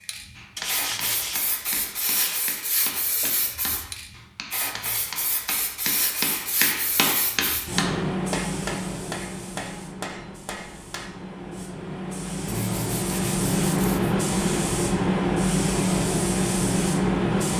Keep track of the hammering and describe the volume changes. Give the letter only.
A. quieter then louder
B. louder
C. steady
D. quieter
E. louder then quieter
E.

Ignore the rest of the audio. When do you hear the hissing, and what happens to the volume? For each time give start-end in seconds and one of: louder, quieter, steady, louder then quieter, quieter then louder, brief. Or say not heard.
0.1-17.5 louder.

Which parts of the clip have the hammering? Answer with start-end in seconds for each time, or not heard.
0.3-11.3.